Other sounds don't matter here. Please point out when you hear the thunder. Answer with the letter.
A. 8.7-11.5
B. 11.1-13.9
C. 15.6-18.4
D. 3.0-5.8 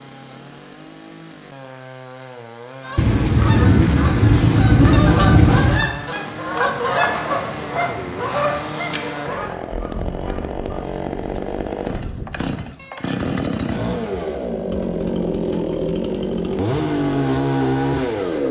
D.